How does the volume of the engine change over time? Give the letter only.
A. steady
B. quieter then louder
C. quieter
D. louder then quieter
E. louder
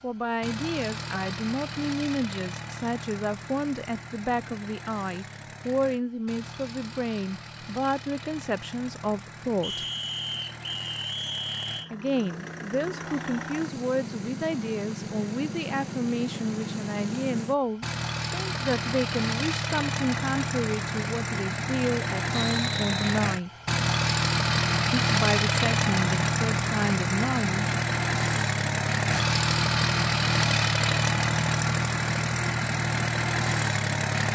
E.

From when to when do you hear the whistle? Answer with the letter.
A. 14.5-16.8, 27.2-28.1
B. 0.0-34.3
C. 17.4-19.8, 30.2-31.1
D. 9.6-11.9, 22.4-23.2
D.